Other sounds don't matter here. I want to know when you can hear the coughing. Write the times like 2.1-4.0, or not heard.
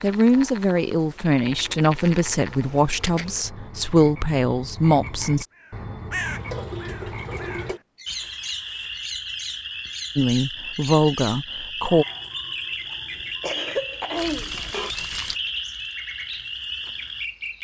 13.4-14.9.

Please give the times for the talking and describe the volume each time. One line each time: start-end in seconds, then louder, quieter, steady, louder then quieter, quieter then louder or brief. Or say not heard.
0.0-5.5 steady
10.2-12.1 brief.